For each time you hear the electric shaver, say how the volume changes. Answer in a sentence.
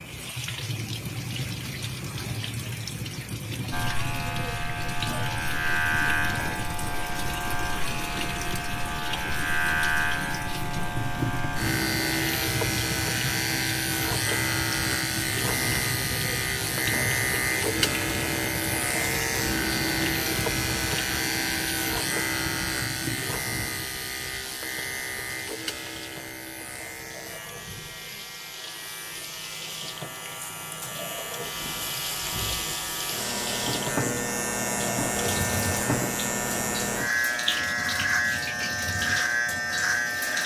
The electric shaver can be heard from 3.7 to 40.4 s, getting quieter then louder.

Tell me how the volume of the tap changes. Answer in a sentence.
The loudness of the tap goes down, then up.